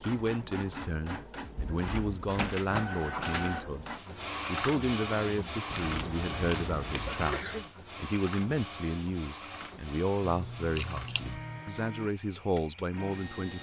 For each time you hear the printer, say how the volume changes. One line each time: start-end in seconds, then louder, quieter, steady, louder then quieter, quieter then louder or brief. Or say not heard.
0.0-13.5 quieter.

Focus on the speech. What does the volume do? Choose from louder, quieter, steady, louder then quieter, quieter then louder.
steady.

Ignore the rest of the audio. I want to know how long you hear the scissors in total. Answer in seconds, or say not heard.
4 s.